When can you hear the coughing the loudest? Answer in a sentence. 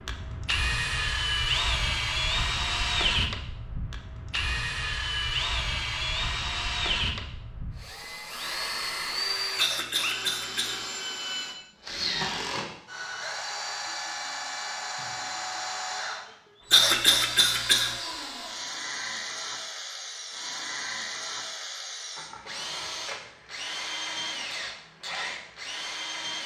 The loudest moment of the coughing is at 17 seconds.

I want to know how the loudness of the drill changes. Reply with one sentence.
The loudness of the drill goes down.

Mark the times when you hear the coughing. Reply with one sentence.
You can hear the coughing from 9.6 to 10.8 s and from 16.7 to 17.9 s.